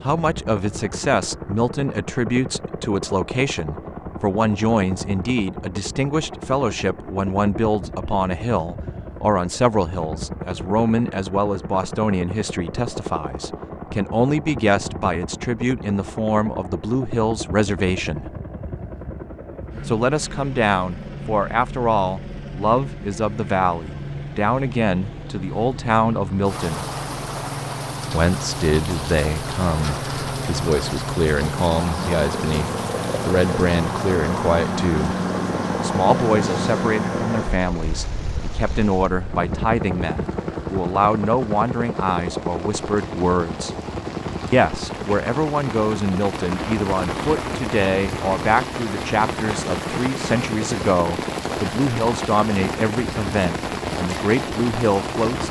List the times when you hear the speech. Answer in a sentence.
The speech can be heard from 0.0 to 18.3 s, from 19.9 to 26.9 s, from 28.1 to 35.1 s, from 35.8 to 43.7 s and from 44.5 to 55.4 s.